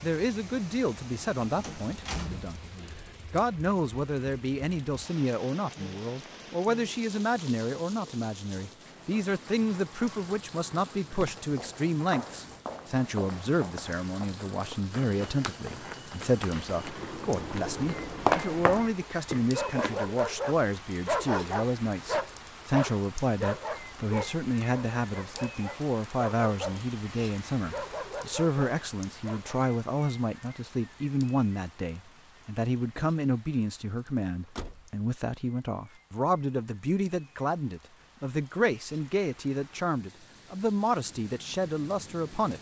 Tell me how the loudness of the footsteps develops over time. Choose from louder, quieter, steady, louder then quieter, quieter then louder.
louder.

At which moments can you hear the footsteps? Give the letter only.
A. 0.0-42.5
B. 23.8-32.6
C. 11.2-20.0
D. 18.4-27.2
C.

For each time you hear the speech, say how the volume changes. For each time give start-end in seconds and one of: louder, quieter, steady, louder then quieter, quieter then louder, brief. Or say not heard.
0.0-42.5 steady.